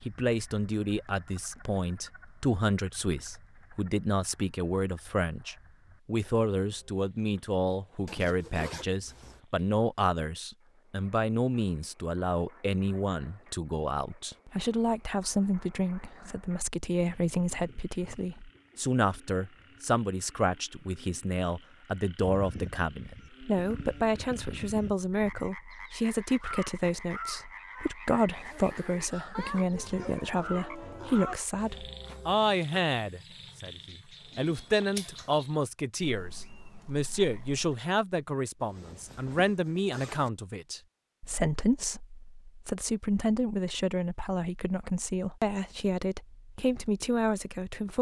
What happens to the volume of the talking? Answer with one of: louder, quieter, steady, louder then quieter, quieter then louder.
steady.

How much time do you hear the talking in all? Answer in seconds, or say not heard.
48 s.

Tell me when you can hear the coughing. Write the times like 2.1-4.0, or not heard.
not heard.